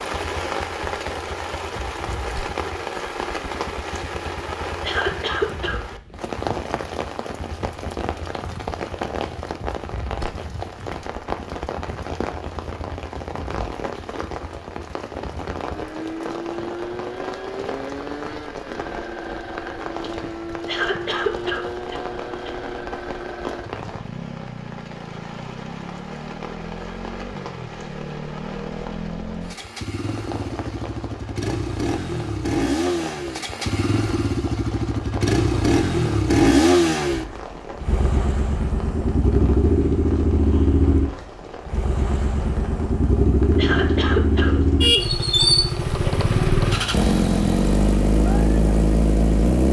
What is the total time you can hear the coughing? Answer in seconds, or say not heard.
4 s.